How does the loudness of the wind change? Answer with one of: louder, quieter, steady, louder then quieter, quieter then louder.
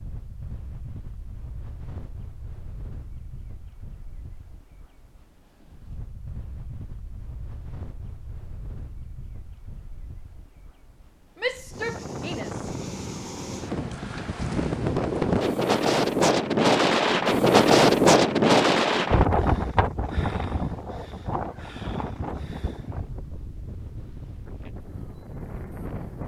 louder then quieter.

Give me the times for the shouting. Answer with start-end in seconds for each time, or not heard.
11.3-12.7.